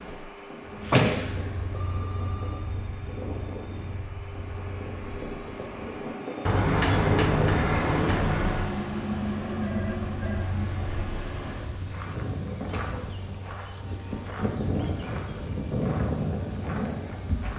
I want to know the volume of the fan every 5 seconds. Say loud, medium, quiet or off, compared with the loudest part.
medium, loud, medium, quiet.